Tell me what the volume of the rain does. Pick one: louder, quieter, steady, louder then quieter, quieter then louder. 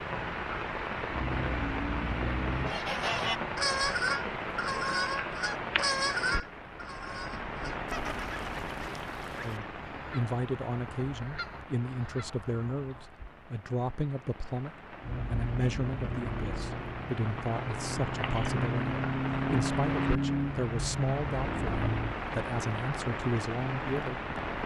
quieter then louder.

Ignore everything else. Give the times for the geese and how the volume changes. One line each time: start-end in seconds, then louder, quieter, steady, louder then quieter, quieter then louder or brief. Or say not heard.
2.5-13.2 quieter.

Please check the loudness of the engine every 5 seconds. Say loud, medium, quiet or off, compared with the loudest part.
loud, off, off, loud, loud.